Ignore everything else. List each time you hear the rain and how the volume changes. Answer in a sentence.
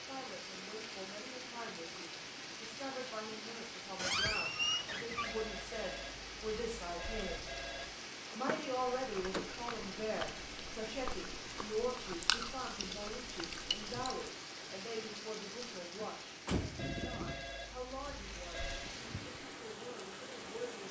The rain can be heard from 0.0 to 20.8 s, at a steady volume.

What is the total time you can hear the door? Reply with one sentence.
The door can be heard for 4 seconds in total.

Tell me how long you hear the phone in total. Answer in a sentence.
The phone can be heard for 5 seconds in total.